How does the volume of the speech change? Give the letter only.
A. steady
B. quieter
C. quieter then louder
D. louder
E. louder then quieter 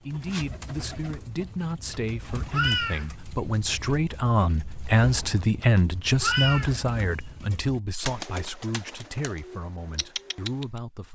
E.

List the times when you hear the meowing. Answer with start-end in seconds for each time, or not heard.
1.9-3.0, 5.6-6.8.